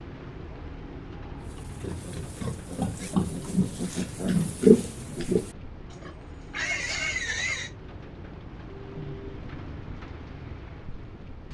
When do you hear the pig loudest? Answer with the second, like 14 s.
5 s.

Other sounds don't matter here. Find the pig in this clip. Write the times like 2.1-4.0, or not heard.
1.4-7.7.